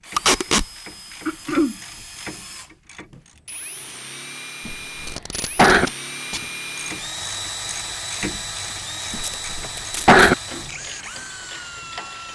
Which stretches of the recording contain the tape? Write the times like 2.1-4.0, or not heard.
0.1-0.7, 5.0-6.5, 9.1-10.2.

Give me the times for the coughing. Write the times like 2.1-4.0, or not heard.
1.2-1.8, 4.7-5.9, 9.1-10.3.